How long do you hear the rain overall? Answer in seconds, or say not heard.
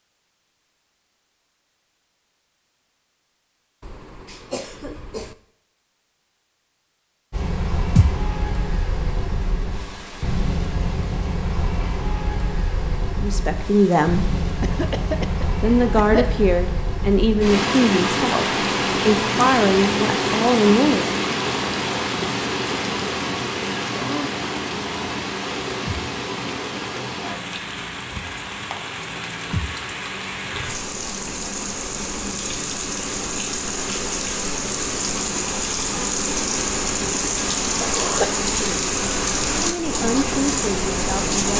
34 s.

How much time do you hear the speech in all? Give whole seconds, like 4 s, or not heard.
9 s.